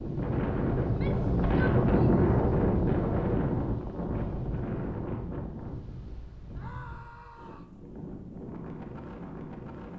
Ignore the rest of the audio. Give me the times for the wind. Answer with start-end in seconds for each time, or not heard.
0.0-9.9.